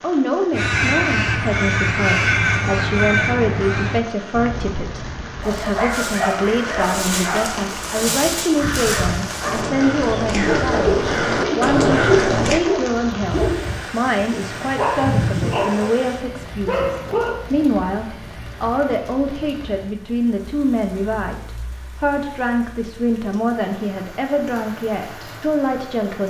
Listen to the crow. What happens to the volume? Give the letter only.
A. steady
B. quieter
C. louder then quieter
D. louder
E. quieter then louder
E.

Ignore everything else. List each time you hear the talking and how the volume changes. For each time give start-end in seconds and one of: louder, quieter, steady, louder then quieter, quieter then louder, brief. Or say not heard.
0.0-26.2 steady.